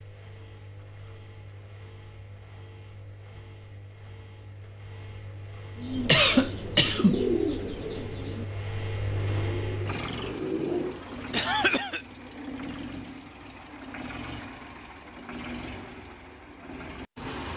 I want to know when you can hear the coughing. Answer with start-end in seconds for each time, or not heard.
6.0-7.2, 11.3-12.1.